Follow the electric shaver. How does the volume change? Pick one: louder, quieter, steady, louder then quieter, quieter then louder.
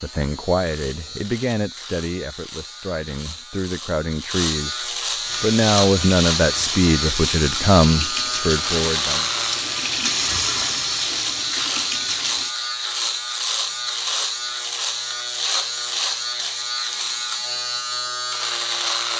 louder.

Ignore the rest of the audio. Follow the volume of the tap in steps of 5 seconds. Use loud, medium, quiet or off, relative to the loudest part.
off, loud, loud, off.